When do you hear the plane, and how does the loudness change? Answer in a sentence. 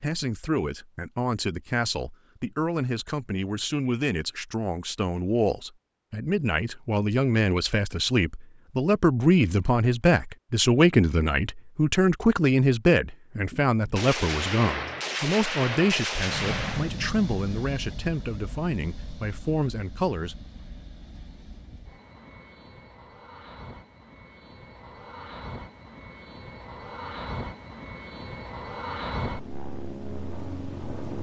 The plane can be heard from 16.2 to 31.1 s, getting quieter then louder.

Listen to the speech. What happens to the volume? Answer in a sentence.
The volume of the speech goes up, then down.